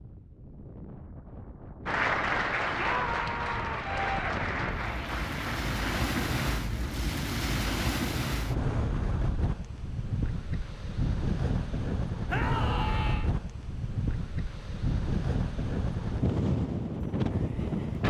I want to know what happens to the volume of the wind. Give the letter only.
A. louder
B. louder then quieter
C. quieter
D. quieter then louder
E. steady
A.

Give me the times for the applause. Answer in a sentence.
The applause can be heard from 1.9 to 6.4 s.